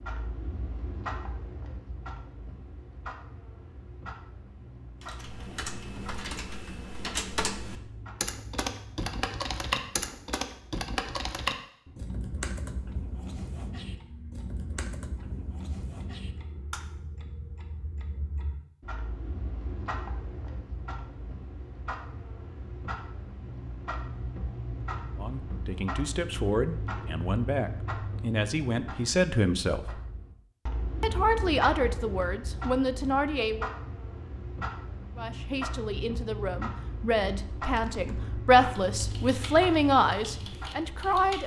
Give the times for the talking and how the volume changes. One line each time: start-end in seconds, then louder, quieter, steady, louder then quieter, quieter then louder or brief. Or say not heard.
25.1-30.0 louder
31.0-33.7 brief
35.1-41.4 louder.